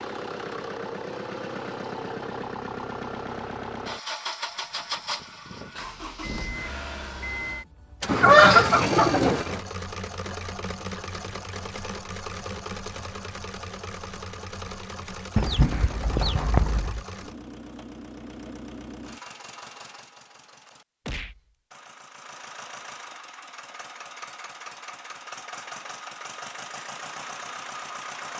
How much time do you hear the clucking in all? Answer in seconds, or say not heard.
3 s.